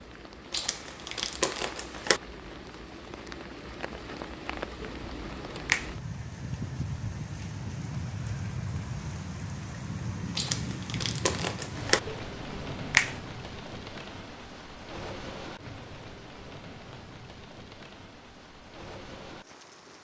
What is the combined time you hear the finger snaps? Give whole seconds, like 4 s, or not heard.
2 s.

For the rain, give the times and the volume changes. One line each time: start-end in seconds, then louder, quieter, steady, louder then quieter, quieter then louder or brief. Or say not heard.
0.0-19.9 louder then quieter.